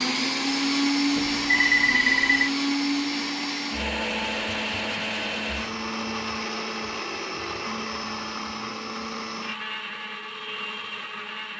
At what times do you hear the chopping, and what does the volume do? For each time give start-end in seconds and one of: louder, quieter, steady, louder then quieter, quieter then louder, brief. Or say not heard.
not heard.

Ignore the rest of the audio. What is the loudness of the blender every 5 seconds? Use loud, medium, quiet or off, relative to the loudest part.
loud, medium, medium.